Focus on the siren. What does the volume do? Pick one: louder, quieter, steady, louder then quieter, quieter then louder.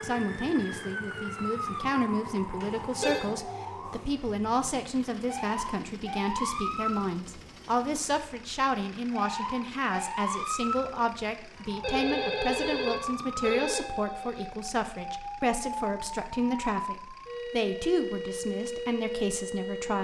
steady.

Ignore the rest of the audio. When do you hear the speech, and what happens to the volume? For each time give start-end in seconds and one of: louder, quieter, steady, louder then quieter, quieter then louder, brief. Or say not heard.
0.0-19.9 steady.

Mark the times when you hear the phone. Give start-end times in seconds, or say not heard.
2.6-3.3, 11.8-14.5.